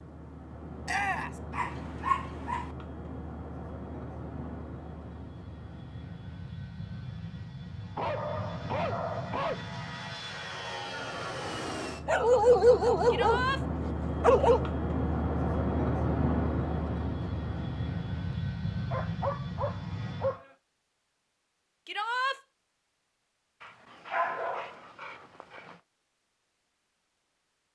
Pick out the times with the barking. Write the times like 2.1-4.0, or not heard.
1.5-2.7, 8.0-9.6, 12.1-14.7, 18.9-20.5, 23.6-25.8.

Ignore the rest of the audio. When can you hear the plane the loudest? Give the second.
16 s.